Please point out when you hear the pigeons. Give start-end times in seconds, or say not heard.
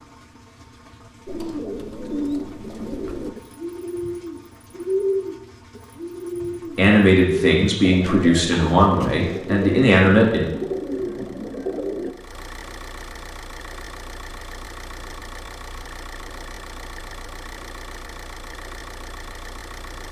1.2-12.2.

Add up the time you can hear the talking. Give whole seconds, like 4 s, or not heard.
4 s.